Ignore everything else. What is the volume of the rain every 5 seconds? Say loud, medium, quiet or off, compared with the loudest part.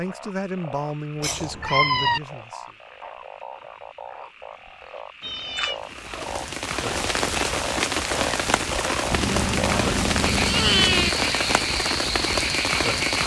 off, loud, loud.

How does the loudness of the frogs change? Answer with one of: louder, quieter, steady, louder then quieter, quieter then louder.
louder.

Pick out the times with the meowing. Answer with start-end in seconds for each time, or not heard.
1.2-2.2, 5.2-6.3, 9.1-11.1.